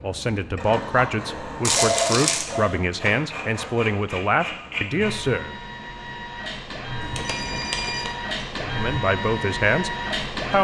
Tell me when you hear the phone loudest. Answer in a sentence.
The loudest moment of the phone is at 2 seconds.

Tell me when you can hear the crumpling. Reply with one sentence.
The crumpling can be heard from 1.6 to 2.5 s and from 7.2 to 8.2 s.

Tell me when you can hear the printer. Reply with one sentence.
You can hear the printer from 0.0 to 10.5 s.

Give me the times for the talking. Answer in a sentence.
The talking can be heard from 0.0 to 5.5 s and from 8.6 to 10.5 s.